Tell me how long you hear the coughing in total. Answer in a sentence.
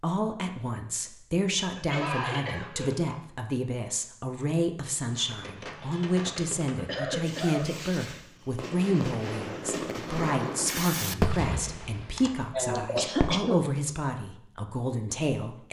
The coughing can be heard for 4 seconds in total.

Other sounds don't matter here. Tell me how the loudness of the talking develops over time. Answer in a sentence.
The loudness of the talking stays about the same.